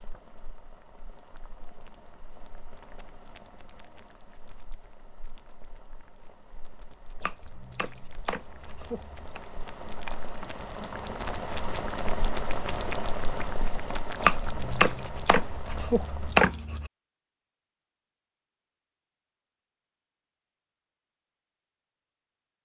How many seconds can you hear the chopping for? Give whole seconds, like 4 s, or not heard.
5 s.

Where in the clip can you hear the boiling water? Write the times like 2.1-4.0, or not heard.
0.0-16.4.